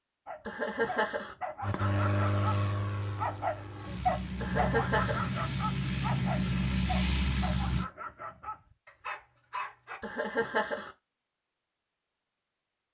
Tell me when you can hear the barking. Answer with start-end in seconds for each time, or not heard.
0.2-10.0.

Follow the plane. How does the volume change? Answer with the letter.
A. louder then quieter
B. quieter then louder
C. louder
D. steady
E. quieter
B.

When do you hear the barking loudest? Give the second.
4 s.